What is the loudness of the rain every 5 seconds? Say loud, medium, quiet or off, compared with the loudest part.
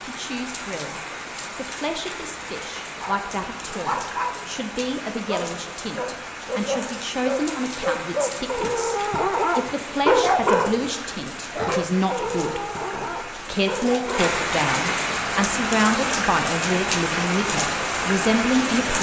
medium, medium, medium, loud.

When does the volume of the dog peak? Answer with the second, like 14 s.
10 s.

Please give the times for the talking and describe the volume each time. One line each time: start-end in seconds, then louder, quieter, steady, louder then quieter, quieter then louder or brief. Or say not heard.
0.0-18.9 louder.